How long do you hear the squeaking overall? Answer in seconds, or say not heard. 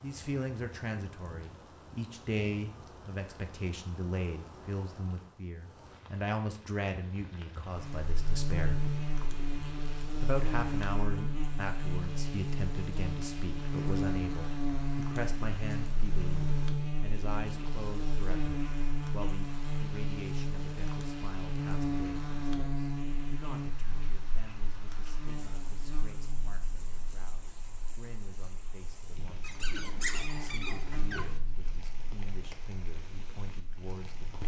2 s.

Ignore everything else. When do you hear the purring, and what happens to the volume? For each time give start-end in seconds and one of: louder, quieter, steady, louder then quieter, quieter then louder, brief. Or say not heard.
not heard.